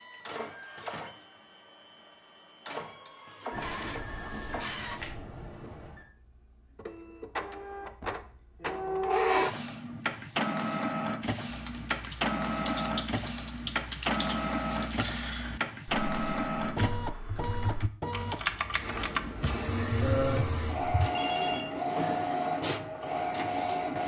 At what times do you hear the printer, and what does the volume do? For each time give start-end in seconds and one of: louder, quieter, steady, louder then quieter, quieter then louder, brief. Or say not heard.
0.0-24.0 louder.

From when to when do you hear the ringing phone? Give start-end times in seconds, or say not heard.
3.5-6.0, 21.1-21.7.